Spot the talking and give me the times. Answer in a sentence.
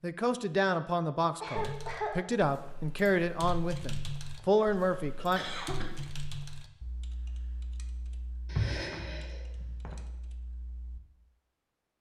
You can hear the talking from 0.0 to 5.4 s.